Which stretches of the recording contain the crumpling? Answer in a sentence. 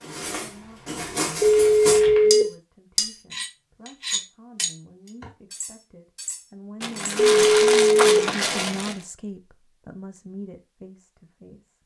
The crumpling can be heard from 1.4 to 2.4 s and from 6.8 to 9.1 s.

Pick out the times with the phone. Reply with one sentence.
The phone can be heard from 1.4 to 2.5 s and from 7.2 to 8.2 s.